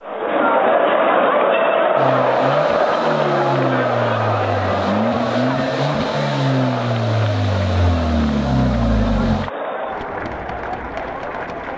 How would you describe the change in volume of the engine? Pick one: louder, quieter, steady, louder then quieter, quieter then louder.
louder.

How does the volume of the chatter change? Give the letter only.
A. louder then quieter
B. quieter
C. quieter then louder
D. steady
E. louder
B.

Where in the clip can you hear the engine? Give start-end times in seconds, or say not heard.
1.9-9.5.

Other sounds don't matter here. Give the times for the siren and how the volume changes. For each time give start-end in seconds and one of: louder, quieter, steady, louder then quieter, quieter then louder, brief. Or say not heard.
not heard.